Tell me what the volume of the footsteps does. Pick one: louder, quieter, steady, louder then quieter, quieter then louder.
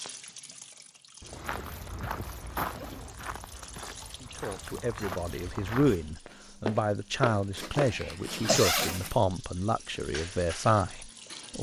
quieter then louder.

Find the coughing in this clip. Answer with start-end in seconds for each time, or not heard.
7.7-8.8.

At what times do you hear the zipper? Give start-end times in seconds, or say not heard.
1.2-3.1, 7.5-9.2.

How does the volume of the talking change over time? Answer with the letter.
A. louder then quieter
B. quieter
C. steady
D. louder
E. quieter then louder
C.